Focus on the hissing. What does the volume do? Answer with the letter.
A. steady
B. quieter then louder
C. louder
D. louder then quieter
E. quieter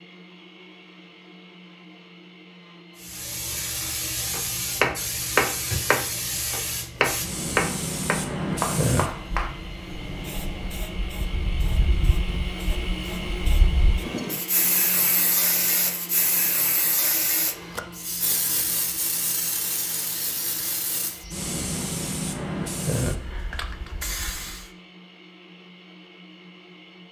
A.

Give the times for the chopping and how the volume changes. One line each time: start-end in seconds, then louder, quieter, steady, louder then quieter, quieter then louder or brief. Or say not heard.
4.3-9.5 quieter.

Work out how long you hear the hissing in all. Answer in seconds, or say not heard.
22 s.